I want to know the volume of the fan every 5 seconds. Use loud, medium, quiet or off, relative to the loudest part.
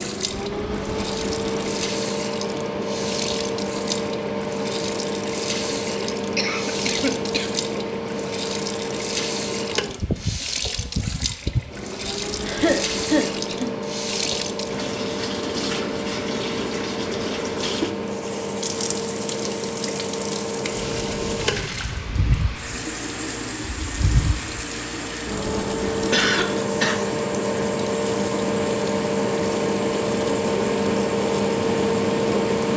medium, medium, medium, medium, medium, loud, loud.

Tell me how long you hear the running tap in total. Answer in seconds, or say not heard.
33 s.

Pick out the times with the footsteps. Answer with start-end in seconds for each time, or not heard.
not heard.